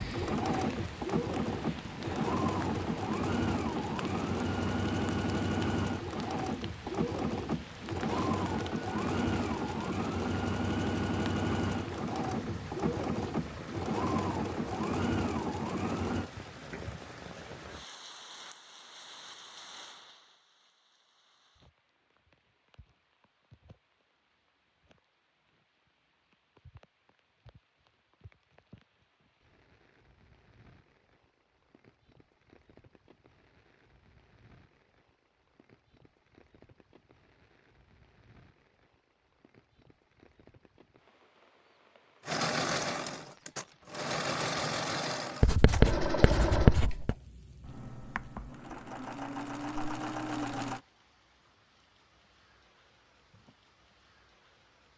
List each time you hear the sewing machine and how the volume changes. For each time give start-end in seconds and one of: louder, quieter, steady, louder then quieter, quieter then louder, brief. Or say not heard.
0.0-16.3 steady
42.2-50.8 quieter then louder.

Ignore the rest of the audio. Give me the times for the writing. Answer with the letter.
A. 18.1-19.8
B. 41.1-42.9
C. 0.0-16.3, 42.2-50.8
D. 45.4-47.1
D.